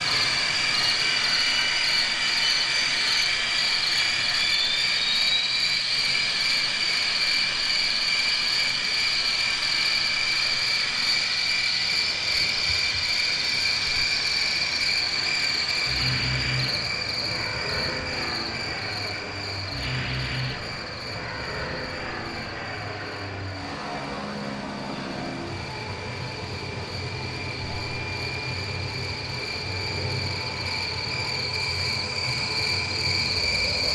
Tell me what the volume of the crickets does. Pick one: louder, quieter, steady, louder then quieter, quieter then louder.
quieter then louder.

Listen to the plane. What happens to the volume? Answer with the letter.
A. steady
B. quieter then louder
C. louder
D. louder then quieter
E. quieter
E.